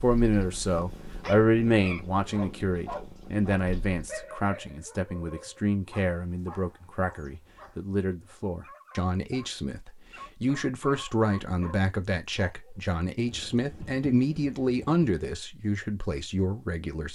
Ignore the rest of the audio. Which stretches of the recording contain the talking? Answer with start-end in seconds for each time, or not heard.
0.0-17.1.